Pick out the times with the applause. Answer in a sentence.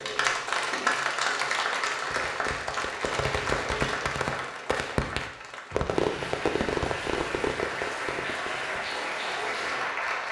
The applause can be heard from 0.0 to 10.2 s.